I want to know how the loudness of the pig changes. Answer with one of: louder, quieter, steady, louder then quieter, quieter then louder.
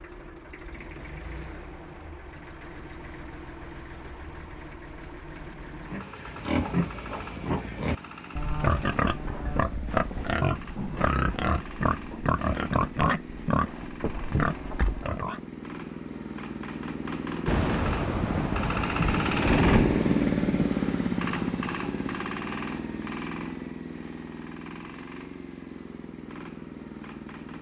steady.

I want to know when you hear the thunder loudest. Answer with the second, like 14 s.
20 s.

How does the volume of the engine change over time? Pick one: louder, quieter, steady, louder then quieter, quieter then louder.
louder then quieter.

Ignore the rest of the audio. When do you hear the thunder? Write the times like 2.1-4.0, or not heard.
17.4-20.7.